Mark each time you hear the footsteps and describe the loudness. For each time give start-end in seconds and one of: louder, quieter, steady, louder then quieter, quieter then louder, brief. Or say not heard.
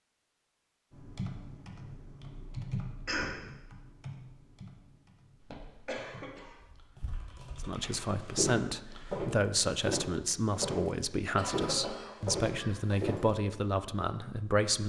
6.6-13.2 louder.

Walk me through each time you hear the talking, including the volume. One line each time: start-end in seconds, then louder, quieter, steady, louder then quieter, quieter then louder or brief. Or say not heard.
7.6-14.8 steady.